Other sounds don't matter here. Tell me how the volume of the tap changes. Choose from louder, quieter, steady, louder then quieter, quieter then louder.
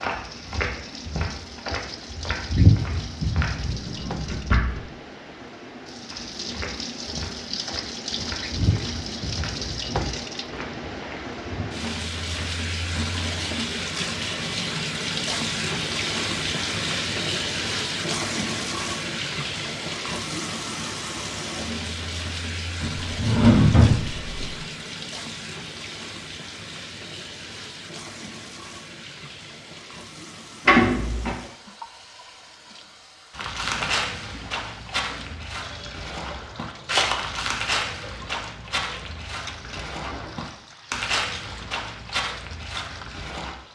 louder then quieter.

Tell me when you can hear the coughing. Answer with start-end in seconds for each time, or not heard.
not heard.